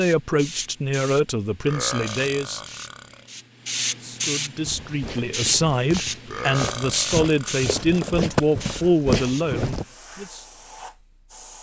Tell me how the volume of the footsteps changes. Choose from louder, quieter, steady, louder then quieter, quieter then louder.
louder.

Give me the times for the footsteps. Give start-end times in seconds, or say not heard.
4.7-9.8.